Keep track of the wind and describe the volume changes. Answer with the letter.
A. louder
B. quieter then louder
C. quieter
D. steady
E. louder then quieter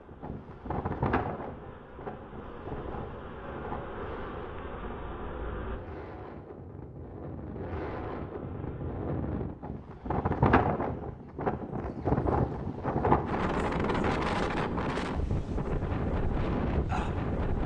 B.